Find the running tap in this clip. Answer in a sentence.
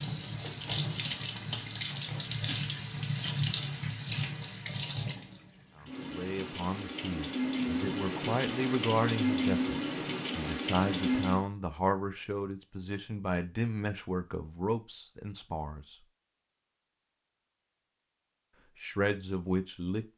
You can hear the running tap from 0.0 to 11.4 s.